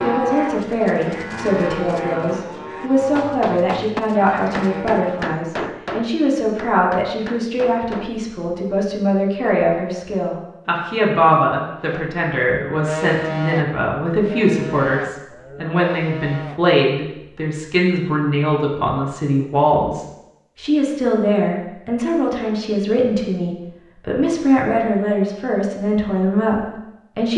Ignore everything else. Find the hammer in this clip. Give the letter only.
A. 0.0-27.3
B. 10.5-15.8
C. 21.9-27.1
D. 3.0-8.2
D.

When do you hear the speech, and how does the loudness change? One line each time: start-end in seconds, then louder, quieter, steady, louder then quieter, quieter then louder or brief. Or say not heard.
0.0-27.3 steady.